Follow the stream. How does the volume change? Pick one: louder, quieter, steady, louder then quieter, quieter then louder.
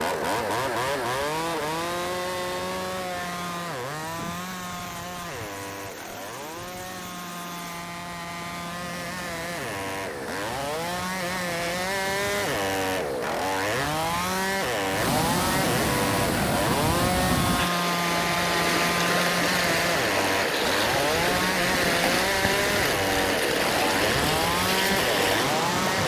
louder.